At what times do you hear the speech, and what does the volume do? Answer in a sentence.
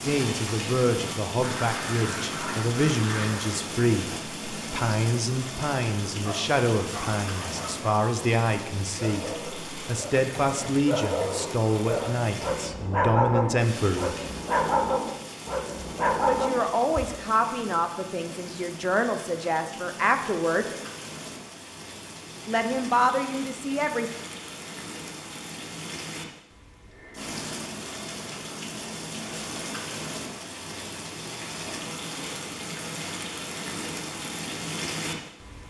You can hear the speech from 0.0 to 14.2 s, at a steady volume; from 16.2 to 20.6 s, getting quieter then louder; and briefly from 22.4 to 24.1 s.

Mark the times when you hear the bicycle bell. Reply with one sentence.
You can't hear the bicycle bell here.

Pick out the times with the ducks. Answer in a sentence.
The ducks can be heard from 1.4 to 3.5 s.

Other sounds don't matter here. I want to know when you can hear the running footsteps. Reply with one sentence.
The running footsteps can't be heard in this clip.